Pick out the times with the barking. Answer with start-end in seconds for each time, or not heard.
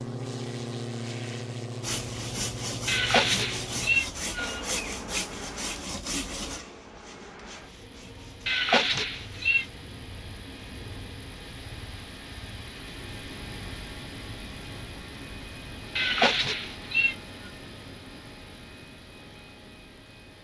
not heard.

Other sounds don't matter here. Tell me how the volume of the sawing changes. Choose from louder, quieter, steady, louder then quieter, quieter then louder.
quieter.